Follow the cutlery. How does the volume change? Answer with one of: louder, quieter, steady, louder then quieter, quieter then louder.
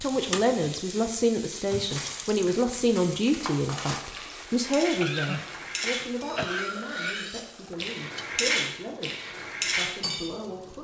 louder.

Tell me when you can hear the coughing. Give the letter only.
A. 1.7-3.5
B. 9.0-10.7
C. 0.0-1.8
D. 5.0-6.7
D.